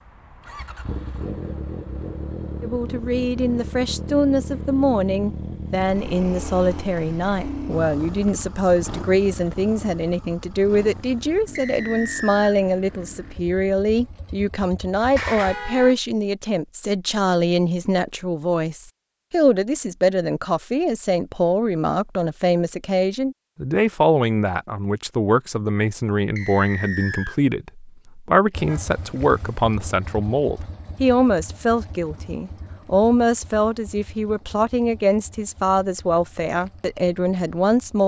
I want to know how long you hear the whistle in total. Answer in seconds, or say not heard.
2 s.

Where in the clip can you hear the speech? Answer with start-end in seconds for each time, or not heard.
2.6-38.0.